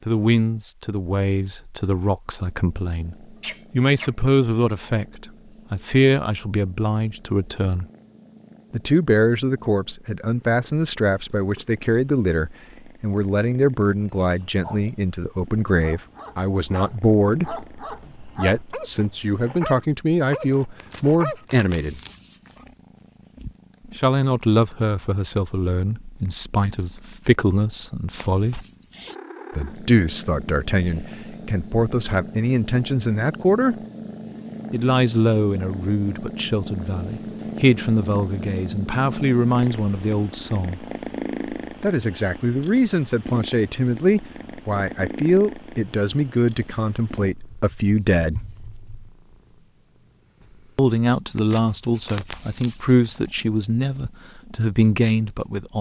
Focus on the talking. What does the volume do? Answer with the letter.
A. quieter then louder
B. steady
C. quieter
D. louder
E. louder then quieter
B.